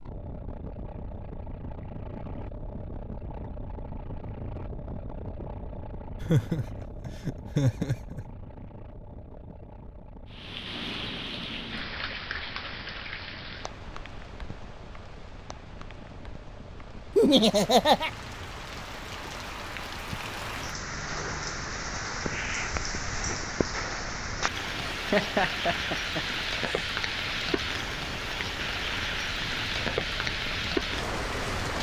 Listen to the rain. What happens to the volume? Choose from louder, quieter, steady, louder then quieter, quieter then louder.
quieter then louder.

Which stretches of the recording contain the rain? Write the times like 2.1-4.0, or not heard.
10.3-31.7.